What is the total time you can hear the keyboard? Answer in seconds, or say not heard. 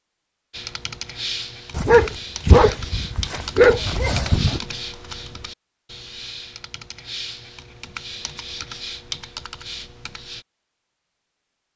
10 s.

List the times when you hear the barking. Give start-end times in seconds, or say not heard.
1.7-4.6.